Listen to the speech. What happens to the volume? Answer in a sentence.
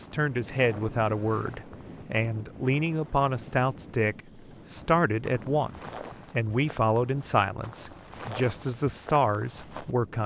The loudness of the speech stays about the same.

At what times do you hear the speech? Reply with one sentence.
You can hear the speech from 0.0 to 10.2 s.